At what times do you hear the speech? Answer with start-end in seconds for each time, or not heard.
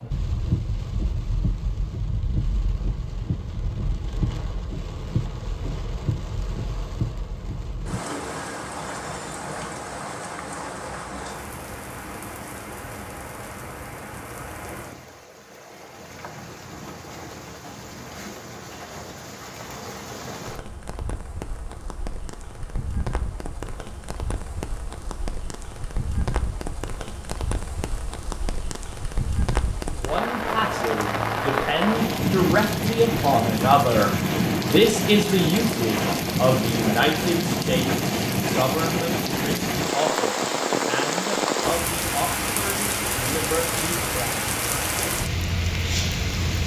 29.9-44.4.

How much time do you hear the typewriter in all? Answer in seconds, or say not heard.
not heard.